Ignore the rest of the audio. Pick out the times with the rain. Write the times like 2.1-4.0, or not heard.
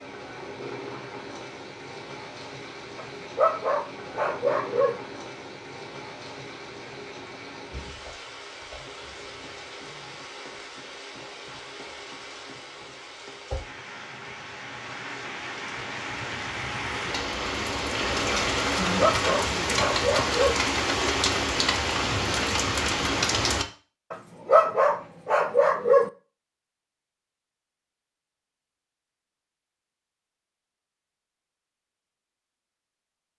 0.0-23.6.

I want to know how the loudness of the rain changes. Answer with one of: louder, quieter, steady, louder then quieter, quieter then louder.
louder.